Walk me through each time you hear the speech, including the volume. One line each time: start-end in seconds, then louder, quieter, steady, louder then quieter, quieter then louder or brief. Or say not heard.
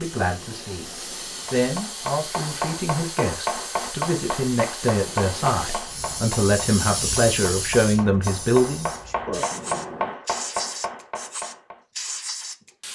0.0-0.9 brief
1.5-8.9 louder.